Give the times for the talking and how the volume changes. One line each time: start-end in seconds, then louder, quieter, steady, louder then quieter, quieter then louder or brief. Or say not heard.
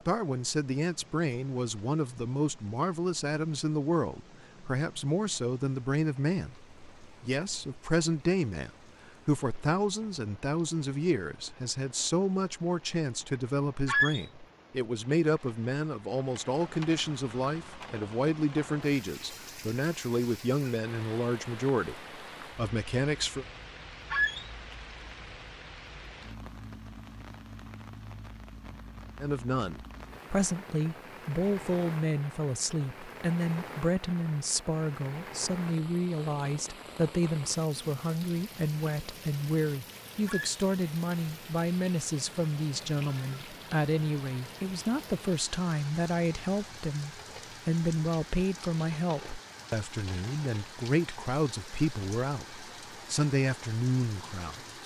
0.1-23.4 steady
29.2-54.8 steady.